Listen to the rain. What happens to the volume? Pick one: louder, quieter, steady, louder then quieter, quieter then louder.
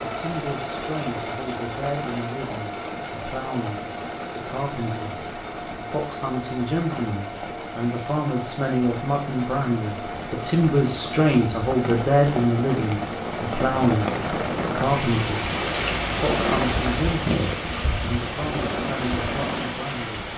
louder.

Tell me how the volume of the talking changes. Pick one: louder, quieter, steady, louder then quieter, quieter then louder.
louder then quieter.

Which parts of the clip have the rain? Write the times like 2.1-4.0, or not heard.
0.0-20.3.